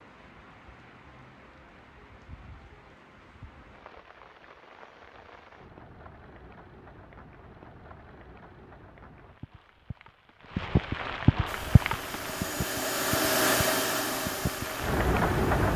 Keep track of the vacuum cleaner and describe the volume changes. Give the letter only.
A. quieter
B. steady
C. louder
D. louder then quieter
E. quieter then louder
D.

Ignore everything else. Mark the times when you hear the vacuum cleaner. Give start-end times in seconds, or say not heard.
11.4-15.7.